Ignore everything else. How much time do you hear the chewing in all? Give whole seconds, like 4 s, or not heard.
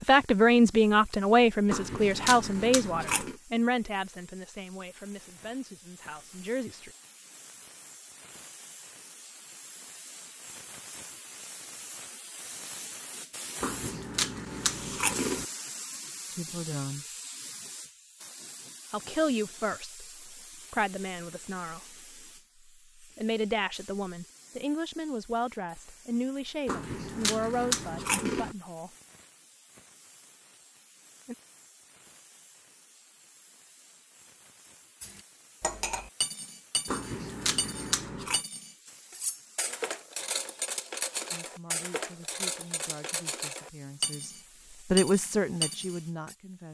7 s.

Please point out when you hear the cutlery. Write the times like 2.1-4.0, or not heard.
35.0-46.4.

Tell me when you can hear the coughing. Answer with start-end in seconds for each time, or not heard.
not heard.